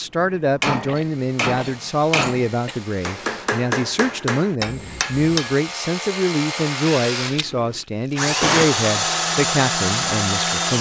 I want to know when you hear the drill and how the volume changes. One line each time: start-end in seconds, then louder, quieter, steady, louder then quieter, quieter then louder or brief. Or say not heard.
0.0-10.7 louder.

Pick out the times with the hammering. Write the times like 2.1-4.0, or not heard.
0.2-5.5.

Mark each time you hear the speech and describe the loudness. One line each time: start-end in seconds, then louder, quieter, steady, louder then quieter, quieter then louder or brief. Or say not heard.
0.0-10.7 steady.